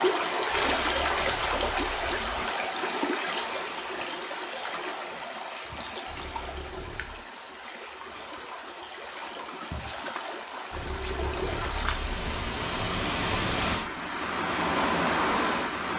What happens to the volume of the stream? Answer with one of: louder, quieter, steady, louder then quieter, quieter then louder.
quieter then louder.